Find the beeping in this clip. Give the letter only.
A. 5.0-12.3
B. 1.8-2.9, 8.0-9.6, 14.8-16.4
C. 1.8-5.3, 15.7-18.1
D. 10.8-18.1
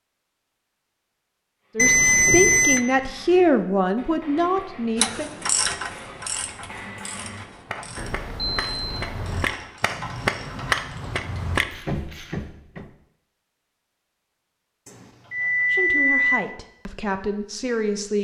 B.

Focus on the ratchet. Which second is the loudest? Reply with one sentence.
The volume of the ratchet peaks at 6 seconds.